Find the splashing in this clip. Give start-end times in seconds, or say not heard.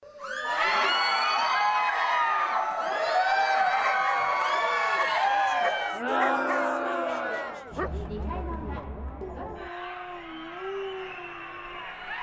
not heard.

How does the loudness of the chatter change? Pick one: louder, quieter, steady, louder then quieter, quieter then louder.
quieter.